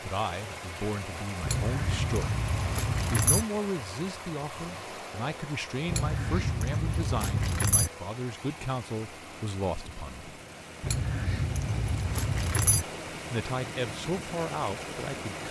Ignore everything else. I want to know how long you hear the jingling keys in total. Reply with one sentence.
The jingling keys can be heard for 6 seconds in total.